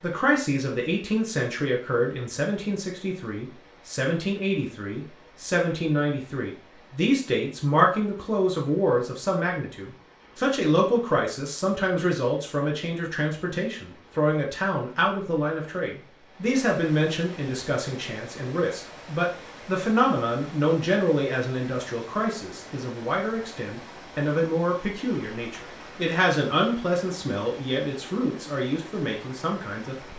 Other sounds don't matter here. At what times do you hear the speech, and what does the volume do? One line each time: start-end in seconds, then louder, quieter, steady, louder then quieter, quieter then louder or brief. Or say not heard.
0.0-29.9 steady.